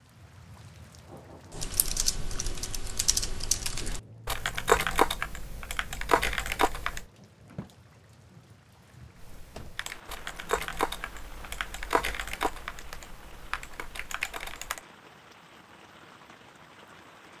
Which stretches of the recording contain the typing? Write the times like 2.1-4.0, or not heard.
1.6-7.0, 9.2-14.8.